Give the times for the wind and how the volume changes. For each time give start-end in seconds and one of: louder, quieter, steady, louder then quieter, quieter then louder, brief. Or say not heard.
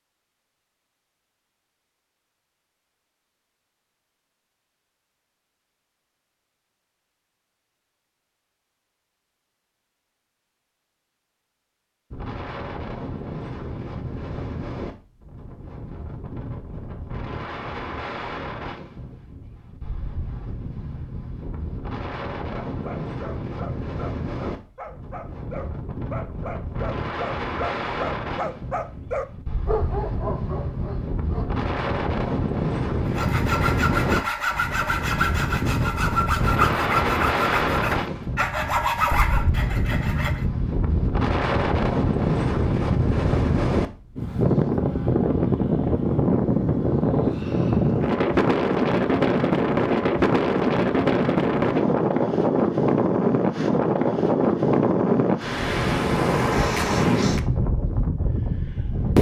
12.1-59.1 louder.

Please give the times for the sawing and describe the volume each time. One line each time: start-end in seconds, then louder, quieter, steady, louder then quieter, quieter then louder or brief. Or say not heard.
33.0-40.5 steady.